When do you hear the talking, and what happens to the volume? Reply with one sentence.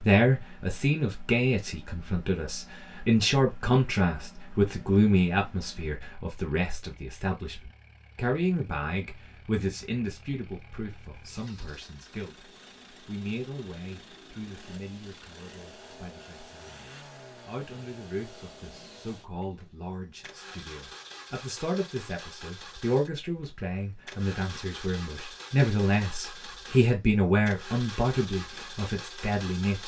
You can hear the talking from 0.0 to 29.8 s, getting quieter then louder.